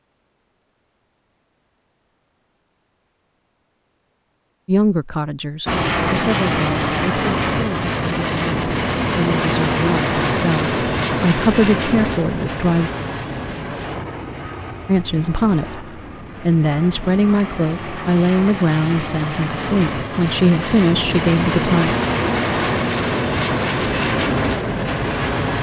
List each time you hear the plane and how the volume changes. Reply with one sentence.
The plane can be heard from 5.7 to 25.5 s, getting quieter then louder.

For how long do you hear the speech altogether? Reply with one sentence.
You can hear the speech for 15 seconds altogether.